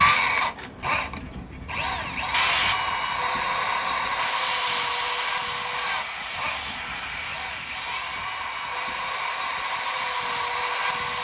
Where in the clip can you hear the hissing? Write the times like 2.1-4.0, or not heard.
0.0-11.1.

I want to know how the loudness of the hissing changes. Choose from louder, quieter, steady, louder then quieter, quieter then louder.
louder then quieter.